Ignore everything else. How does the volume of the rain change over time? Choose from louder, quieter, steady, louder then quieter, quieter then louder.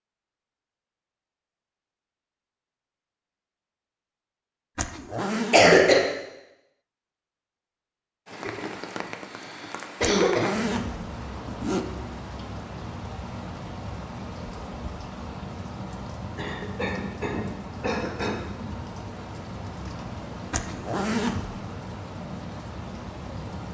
steady.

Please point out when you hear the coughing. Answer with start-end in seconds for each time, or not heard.
5.3-6.0, 8.3-10.6, 16.4-18.4.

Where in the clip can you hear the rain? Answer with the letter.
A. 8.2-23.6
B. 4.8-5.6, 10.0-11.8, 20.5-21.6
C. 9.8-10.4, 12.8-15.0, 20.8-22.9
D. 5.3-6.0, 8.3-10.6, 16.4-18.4
A.